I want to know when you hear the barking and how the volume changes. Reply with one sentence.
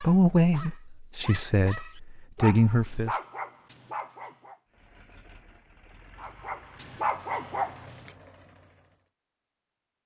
The barking can be heard from 0.0 to 4.6 s, getting louder then quieter; and briefly from 6.2 to 8.1 s.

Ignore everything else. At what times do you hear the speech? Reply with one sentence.
The speech can be heard from 0.0 to 3.1 s.